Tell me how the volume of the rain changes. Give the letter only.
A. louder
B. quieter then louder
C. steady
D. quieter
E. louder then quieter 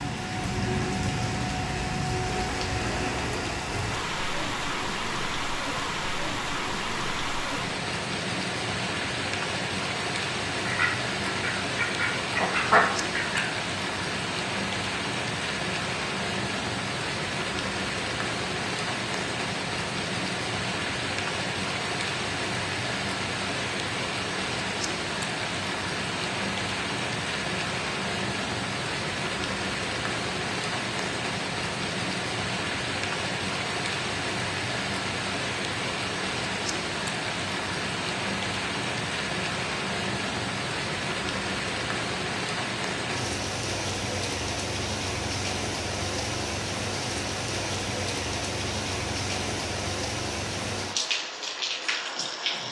C.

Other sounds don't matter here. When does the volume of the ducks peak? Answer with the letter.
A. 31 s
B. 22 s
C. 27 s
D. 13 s
D.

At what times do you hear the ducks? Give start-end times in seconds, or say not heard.
10.7-13.4.